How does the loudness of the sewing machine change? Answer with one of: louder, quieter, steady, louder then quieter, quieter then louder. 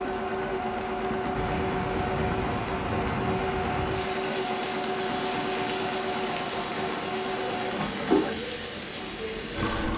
steady.